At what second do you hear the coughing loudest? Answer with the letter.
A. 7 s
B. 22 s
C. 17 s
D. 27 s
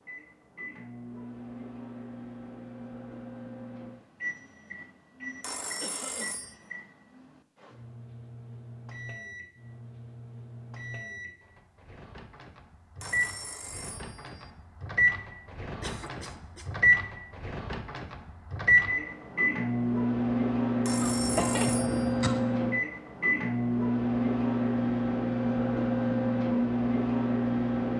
B.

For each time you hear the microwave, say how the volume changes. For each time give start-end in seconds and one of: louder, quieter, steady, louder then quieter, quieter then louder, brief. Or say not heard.
0.0-27.9 louder.